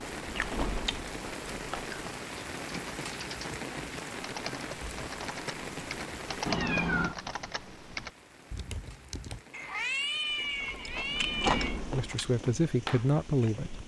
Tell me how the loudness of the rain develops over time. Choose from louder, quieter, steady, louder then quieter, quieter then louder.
quieter.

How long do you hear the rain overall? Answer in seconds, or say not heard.
14 s.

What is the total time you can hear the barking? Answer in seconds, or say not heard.
not heard.